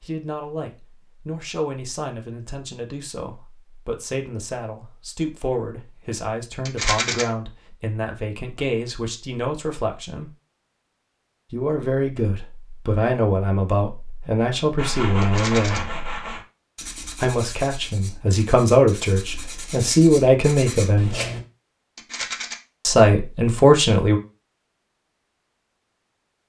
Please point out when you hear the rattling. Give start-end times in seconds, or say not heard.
6.7-7.2, 15.2-15.8, 21.9-22.6.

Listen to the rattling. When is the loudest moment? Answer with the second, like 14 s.
7 s.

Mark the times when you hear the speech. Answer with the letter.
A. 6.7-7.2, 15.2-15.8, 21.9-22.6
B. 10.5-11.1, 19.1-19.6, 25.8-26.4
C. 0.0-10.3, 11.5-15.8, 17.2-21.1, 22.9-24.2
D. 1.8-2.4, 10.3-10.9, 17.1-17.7
C.